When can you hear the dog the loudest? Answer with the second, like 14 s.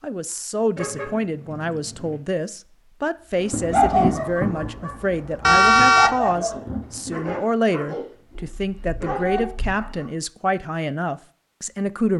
4 s.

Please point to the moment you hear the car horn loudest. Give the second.
6 s.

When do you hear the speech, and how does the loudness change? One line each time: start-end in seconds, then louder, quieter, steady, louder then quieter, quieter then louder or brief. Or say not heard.
0.0-12.1 steady.